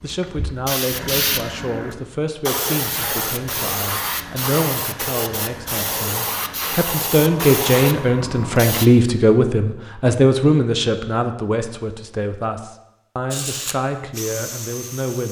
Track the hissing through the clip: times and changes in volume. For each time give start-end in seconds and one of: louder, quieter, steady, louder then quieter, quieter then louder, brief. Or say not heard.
0.0-8.9 steady.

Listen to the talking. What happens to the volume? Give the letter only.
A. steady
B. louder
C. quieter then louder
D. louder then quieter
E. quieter
D.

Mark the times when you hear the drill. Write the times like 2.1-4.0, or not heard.
13.3-15.2.